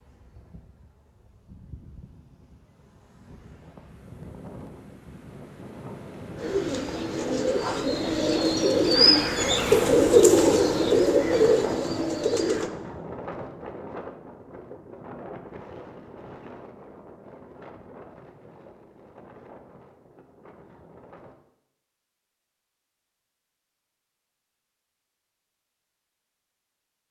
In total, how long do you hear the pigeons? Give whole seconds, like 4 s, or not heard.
6 s.